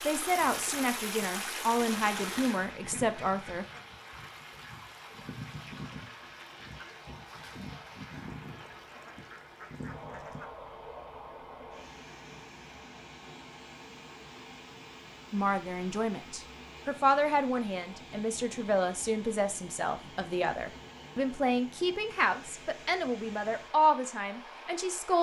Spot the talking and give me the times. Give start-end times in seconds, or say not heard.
0.0-3.6, 15.3-25.1.